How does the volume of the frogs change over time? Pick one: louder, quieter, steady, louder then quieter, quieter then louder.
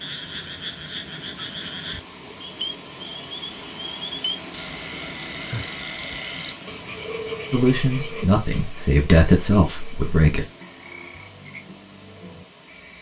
quieter.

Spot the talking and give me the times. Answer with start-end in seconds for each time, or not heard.
7.5-10.4.